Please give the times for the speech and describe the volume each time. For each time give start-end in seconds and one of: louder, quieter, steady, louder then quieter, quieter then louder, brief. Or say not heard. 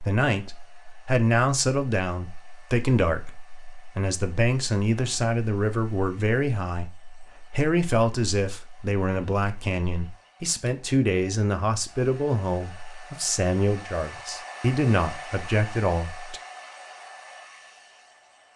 0.0-16.4 steady.